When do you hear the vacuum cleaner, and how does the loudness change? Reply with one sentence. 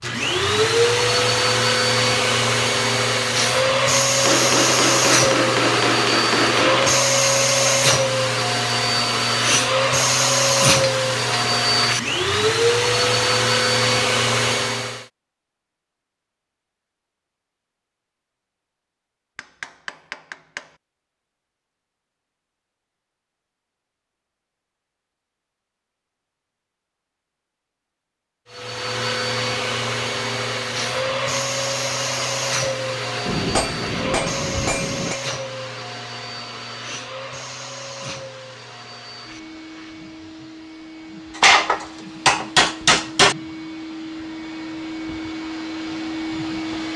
The vacuum cleaner can be heard from 0.0 to 15.1 s, at a steady volume; and from 28.5 to 46.9 s, getting quieter then louder.